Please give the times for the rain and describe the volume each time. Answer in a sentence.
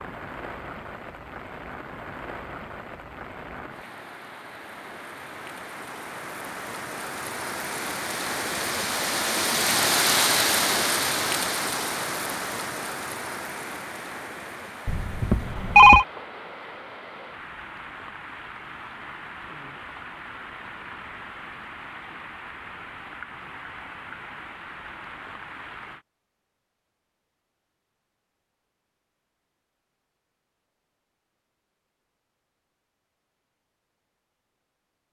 The rain can be heard from 0.0 to 26.1 s, getting louder then quieter.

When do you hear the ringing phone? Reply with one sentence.
The ringing phone can be heard from 14.8 to 16.1 s.